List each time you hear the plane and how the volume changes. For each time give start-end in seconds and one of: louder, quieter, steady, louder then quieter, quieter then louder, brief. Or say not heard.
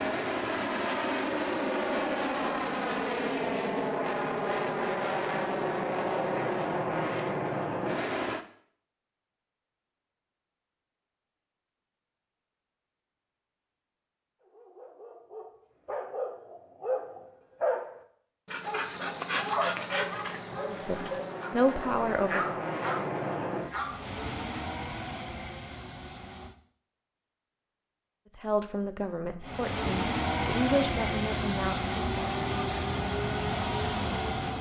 0.0-8.4 steady
18.9-26.6 louder then quieter
29.4-34.5 steady.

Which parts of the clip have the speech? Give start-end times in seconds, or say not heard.
20.7-22.6, 28.4-32.0.